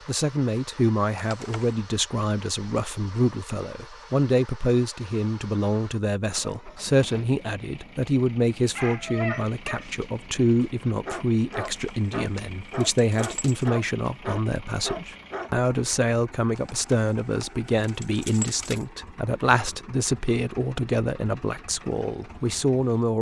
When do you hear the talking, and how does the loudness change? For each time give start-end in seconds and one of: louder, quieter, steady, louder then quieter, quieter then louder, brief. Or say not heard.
0.1-23.1 steady.